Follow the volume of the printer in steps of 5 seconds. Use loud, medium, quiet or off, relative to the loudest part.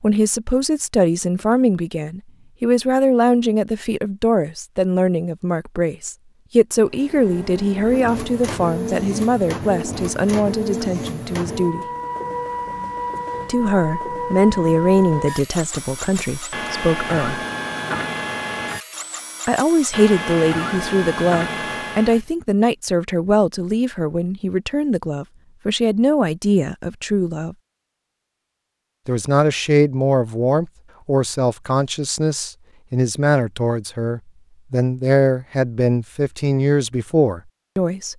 off, loud, loud, loud, loud, off, off, off.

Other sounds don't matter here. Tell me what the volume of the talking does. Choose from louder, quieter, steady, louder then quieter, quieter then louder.
steady.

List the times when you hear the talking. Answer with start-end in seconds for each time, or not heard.
0.0-11.8, 13.4-17.4, 19.4-27.6, 29.1-38.1.